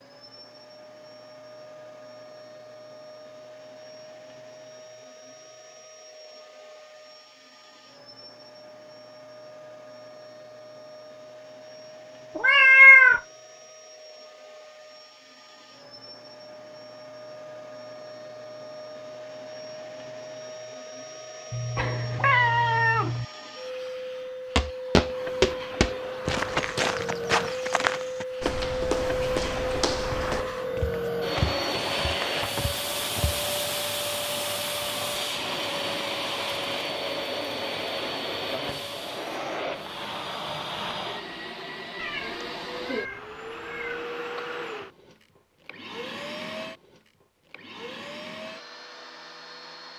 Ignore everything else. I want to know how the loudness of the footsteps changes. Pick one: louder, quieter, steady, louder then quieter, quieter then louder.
quieter.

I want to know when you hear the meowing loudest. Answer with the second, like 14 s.
13 s.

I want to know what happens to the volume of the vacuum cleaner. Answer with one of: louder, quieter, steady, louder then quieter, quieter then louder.
louder then quieter.